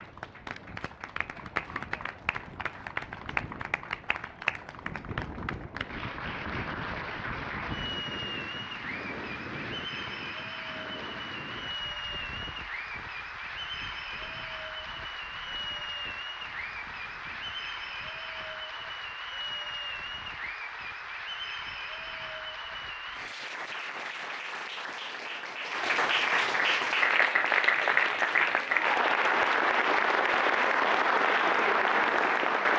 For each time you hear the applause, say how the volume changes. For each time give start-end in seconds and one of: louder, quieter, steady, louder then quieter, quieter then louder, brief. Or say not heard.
0.0-32.7 louder.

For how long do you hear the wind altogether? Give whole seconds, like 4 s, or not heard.
23 s.